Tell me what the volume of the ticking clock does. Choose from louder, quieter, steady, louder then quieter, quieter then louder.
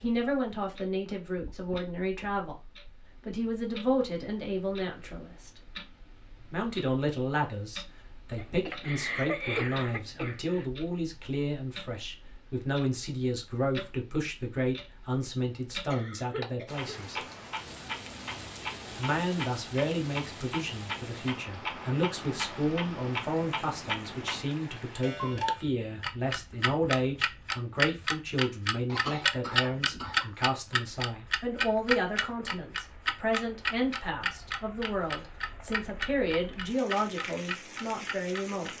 louder.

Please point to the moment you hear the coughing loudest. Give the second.
9 s.